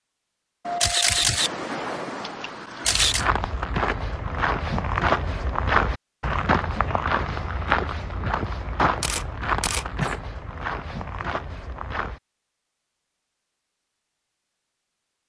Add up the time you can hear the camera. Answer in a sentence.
You can hear the camera for 4 seconds altogether.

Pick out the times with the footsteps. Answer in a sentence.
The footsteps can be heard from 2.9 to 12.2 s.